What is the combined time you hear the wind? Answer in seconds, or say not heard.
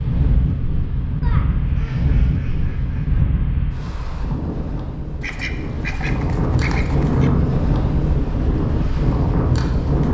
10 s.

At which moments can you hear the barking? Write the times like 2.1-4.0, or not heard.
not heard.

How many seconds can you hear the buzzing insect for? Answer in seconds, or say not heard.
not heard.